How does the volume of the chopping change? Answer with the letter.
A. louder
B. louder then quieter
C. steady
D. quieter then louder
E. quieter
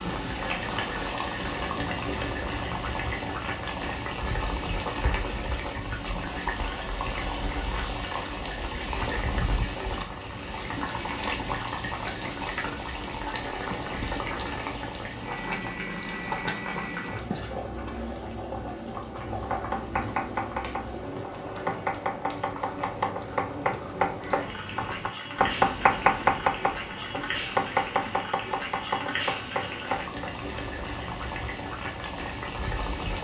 B.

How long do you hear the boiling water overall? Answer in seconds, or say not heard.
33 s.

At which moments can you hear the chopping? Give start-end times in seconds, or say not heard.
19.4-30.3.